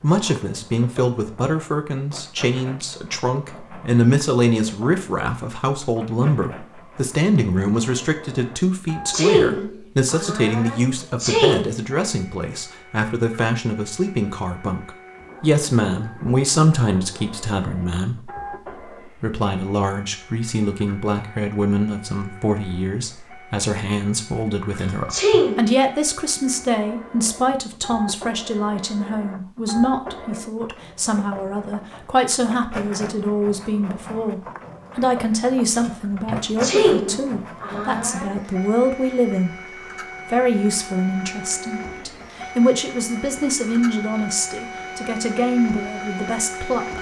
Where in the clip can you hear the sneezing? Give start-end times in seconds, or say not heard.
9.1-11.7, 25.1-25.7, 36.6-38.3.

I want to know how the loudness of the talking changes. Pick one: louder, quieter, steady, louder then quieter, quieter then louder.
steady.